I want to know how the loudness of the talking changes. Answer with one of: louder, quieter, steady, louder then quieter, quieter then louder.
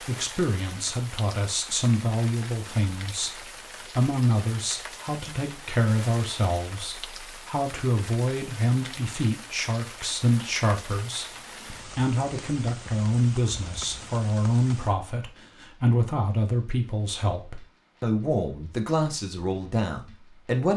steady.